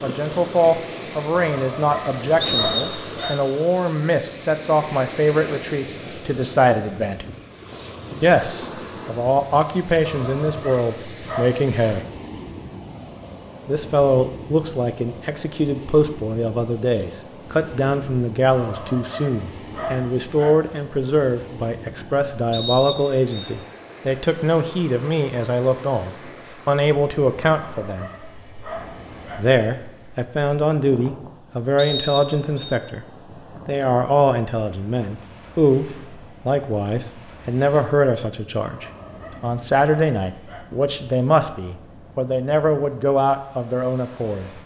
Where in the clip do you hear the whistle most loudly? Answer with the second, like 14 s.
3 s.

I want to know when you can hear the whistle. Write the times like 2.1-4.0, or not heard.
2.4-3.3, 22.5-23.5, 31.8-32.8.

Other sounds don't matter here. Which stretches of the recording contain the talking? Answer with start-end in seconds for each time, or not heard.
0.0-7.3, 8.2-12.1, 13.7-28.1, 29.4-33.0, 33.6-44.6.